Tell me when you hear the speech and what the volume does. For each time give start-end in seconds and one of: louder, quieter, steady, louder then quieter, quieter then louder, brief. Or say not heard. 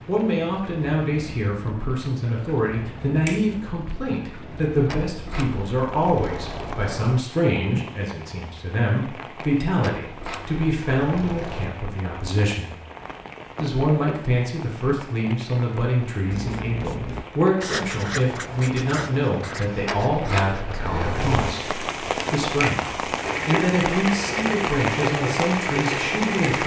0.1-12.7 steady
13.6-26.6 steady.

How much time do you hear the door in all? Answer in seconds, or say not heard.
6 s.